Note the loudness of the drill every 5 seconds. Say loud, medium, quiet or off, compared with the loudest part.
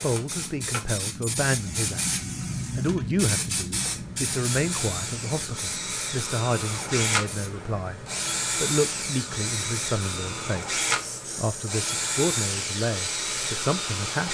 medium, loud, loud.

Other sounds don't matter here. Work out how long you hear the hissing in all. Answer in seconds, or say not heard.
14 s.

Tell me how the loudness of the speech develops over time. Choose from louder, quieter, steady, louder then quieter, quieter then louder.
steady.